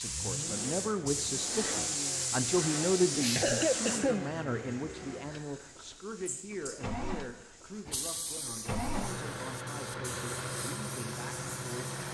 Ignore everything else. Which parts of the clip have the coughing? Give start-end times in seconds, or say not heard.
3.1-4.2.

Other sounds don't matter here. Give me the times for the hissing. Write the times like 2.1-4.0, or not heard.
0.0-12.1.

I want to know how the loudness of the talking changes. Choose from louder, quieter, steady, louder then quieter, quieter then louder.
quieter.